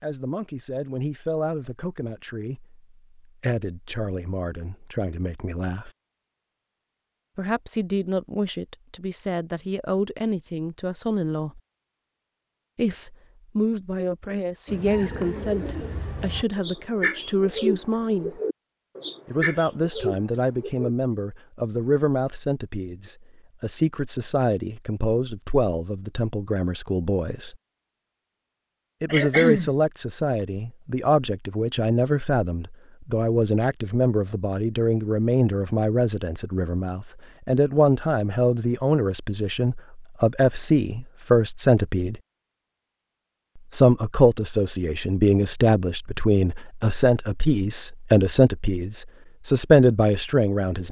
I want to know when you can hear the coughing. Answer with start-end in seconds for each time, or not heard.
29.1-29.8.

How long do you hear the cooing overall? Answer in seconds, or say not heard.
6 s.